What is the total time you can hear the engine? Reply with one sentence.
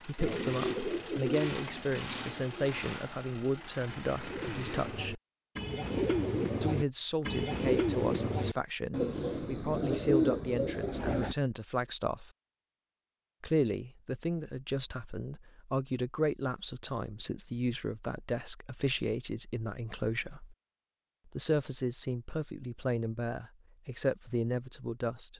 The engine can be heard for 5 seconds in total.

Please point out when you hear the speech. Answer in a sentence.
You can hear the speech from 0.1 to 5.2 s, from 6.6 to 12.3 s, from 13.4 to 20.6 s and from 21.2 to 25.3 s.